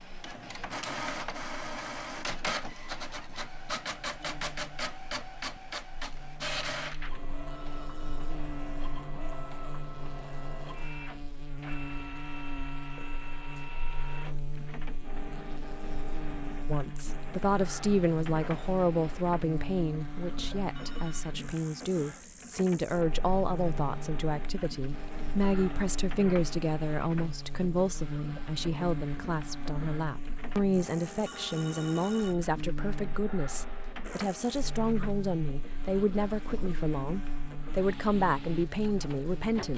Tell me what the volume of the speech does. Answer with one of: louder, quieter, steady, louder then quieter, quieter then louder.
steady.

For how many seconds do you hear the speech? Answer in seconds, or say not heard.
23 s.